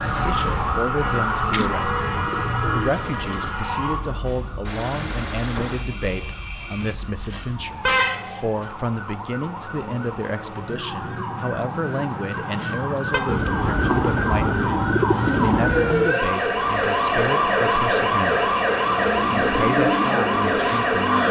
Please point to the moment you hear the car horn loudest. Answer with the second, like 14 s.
8 s.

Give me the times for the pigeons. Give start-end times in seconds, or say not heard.
1.5-3.5, 13.2-16.1.